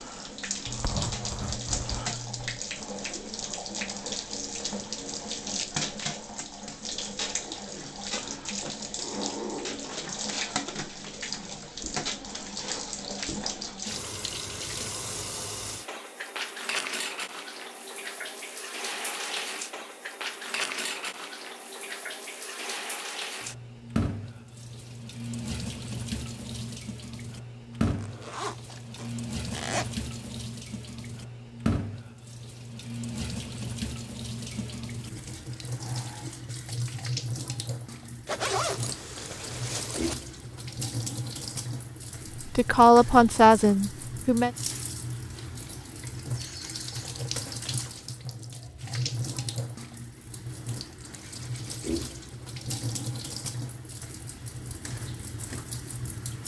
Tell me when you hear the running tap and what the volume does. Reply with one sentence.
You can hear the running tap from 0.0 to 56.4 s, at a steady volume.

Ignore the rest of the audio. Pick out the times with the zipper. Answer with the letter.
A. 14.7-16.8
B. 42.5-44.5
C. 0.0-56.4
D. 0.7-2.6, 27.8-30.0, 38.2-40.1
D.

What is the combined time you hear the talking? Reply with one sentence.
You can hear the talking for 2 seconds altogether.